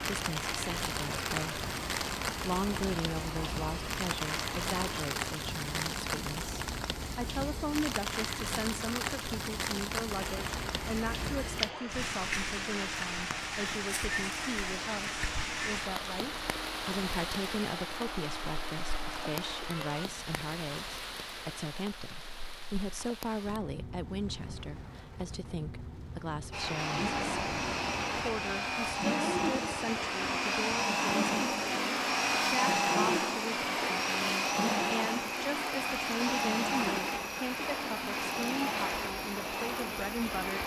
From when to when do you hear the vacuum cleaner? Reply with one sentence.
The vacuum cleaner can be heard from 0.0 to 5.0 s, from 10.2 to 20.1 s and from 26.5 to 40.6 s.